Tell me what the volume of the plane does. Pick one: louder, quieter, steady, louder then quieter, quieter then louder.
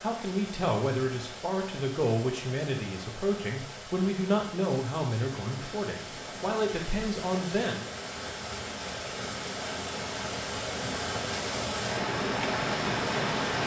louder.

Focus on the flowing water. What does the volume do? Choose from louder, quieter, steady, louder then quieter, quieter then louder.
louder.